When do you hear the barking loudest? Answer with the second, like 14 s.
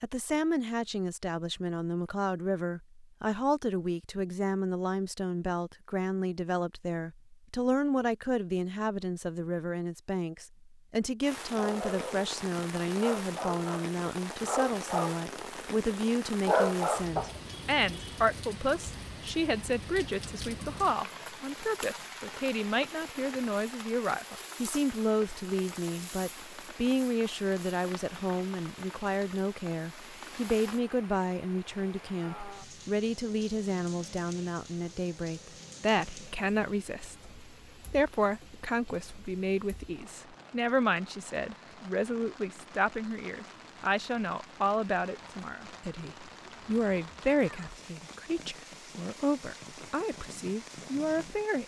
17 s.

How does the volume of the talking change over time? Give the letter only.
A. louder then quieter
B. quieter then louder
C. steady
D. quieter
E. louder
C.